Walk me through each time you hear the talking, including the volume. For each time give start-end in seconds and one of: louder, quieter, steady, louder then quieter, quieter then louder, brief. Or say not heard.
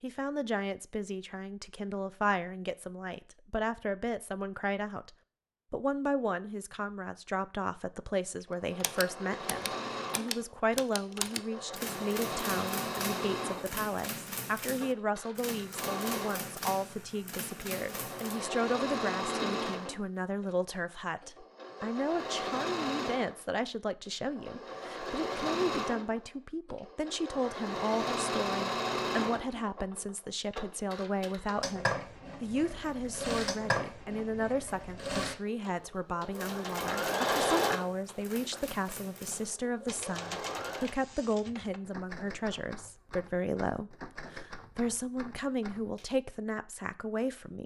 0.0-47.6 steady.